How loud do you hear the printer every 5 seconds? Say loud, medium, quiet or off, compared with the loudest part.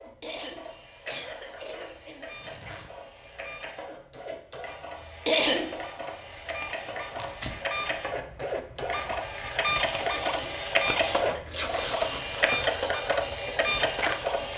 quiet, medium, loud.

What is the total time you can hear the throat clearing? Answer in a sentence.
You can hear the throat clearing for 5 seconds altogether.